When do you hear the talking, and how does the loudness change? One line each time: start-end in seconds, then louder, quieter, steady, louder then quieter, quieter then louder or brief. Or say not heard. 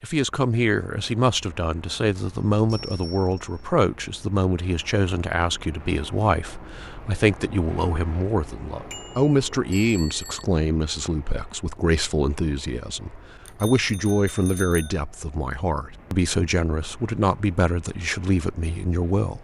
0.0-19.4 steady.